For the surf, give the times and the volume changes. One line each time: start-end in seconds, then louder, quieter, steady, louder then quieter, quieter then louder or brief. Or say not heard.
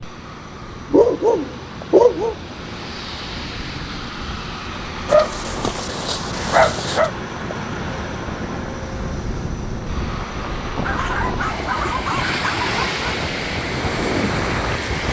0.0-15.0 louder.